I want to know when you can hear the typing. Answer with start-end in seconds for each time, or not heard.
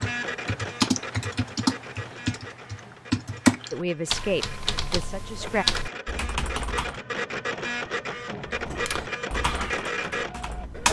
0.0-7.0, 8.5-10.8.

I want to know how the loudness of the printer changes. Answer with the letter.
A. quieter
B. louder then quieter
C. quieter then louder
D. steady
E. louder
C.